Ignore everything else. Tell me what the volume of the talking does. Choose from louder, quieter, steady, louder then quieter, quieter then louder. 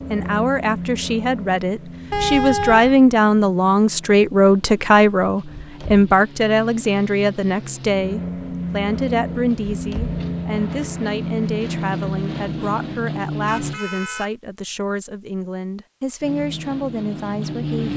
quieter.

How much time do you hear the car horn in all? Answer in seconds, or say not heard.
2 s.